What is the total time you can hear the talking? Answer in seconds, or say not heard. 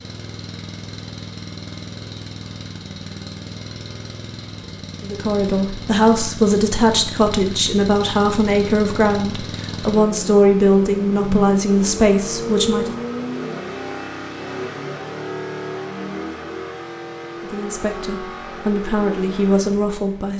11 s.